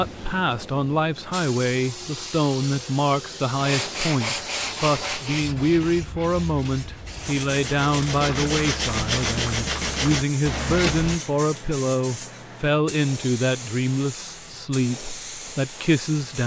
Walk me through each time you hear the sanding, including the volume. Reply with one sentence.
The sanding can be heard from 3.5 to 11.2 s, getting quieter then louder.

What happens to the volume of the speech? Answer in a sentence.
The loudness of the speech stays about the same.